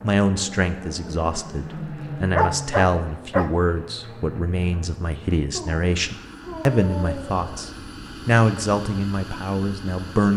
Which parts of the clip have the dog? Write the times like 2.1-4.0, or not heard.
2.4-3.5, 5.5-7.8.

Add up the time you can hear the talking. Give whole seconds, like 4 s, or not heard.
10 s.